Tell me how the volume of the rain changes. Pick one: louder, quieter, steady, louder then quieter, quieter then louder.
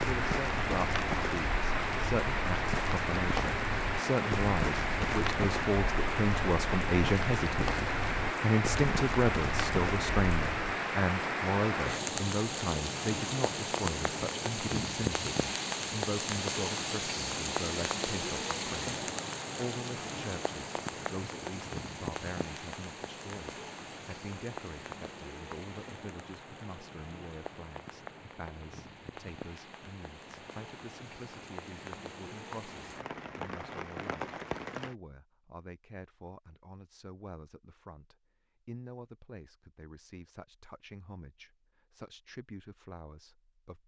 quieter.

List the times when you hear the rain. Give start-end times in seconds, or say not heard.
0.0-35.0.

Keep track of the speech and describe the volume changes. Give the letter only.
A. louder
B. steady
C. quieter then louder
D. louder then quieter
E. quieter
E.